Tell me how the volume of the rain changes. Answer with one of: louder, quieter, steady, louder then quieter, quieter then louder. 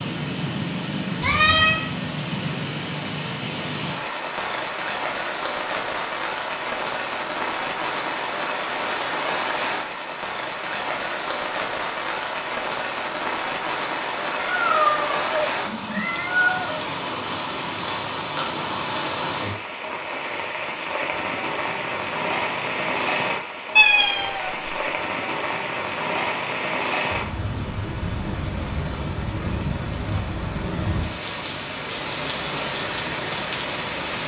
steady.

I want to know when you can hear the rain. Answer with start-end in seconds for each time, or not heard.
0.0-34.2.